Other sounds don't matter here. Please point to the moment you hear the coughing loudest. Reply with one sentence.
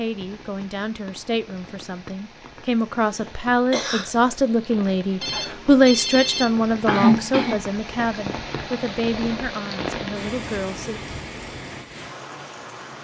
The loudest moment of the coughing is at 7 seconds.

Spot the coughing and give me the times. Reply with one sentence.
You can hear the coughing from 2.5 to 4.0 s and from 6.8 to 7.5 s.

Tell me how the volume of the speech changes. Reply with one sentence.
The loudness of the speech goes up, then down.